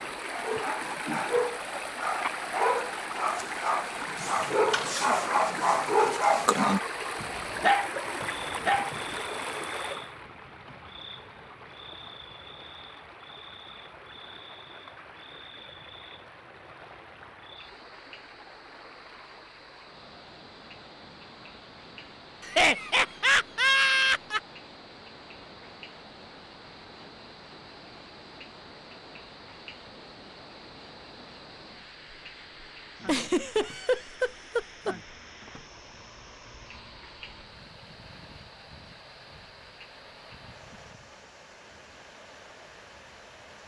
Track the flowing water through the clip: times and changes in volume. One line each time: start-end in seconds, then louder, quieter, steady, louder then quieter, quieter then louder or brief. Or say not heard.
0.0-43.6 quieter.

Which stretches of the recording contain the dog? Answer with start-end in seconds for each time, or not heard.
0.3-9.2.